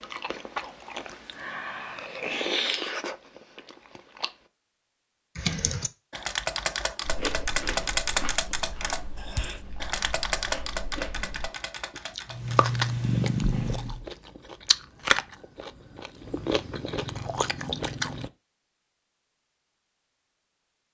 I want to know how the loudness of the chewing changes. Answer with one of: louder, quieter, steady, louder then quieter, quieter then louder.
quieter then louder.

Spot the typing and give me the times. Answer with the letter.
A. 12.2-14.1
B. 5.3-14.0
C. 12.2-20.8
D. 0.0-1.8
B.